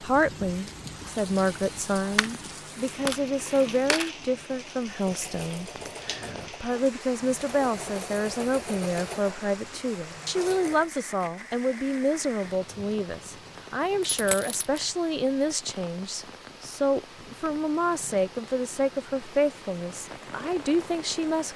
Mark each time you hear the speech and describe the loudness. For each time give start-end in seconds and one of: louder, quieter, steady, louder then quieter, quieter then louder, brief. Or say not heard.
0.0-21.5 steady.